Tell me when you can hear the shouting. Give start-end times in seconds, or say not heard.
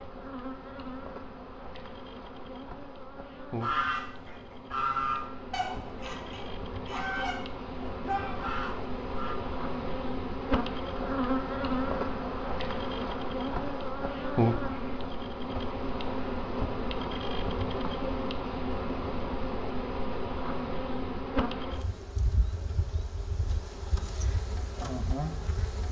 8.1-8.8.